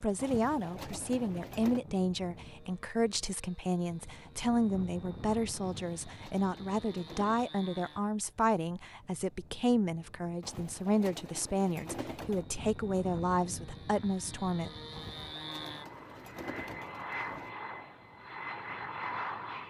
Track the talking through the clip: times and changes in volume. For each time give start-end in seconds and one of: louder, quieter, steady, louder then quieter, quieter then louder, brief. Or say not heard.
0.0-14.7 steady.